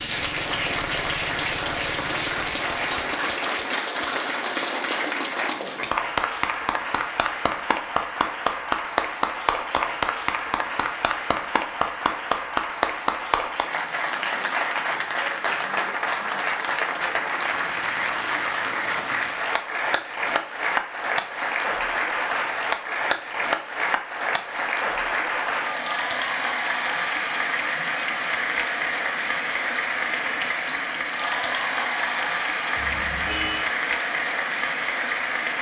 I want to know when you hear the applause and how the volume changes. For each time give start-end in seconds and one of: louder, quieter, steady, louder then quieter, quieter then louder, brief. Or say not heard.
0.0-35.5 steady.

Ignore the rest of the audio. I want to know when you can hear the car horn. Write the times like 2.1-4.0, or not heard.
32.8-33.6.